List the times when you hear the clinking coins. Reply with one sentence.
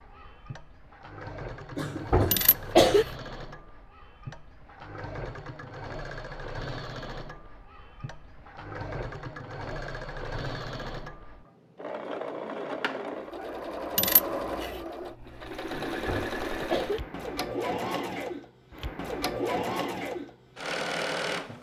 The clinking coins can be heard from 2.3 to 3.1 s and from 13.9 to 14.8 s.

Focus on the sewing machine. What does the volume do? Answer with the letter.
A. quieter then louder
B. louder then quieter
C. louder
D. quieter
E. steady
C.